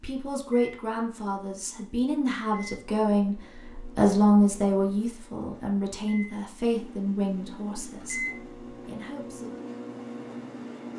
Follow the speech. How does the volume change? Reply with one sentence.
The loudness of the speech goes up, then down.